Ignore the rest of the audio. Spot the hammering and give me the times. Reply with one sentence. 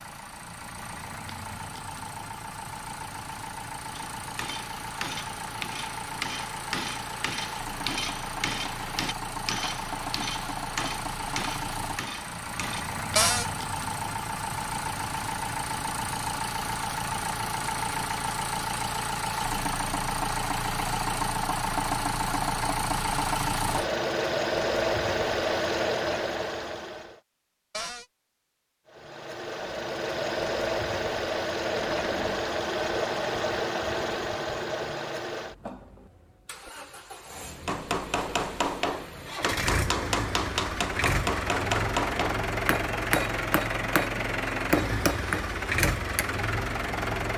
You can hear the hammering from 3.9 to 12.8 s and from 37.6 to 46.3 s.